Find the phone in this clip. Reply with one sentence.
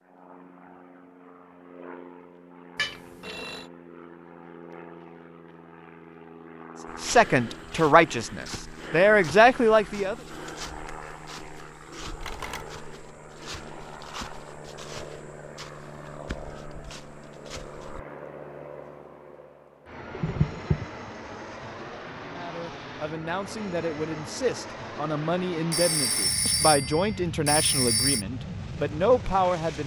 The phone can be heard from 2.8 to 3.6 s, from 12.2 to 12.7 s and from 25.7 to 28.2 s.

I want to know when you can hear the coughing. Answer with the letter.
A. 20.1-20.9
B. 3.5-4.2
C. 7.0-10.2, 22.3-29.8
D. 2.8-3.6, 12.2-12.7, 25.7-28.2
A.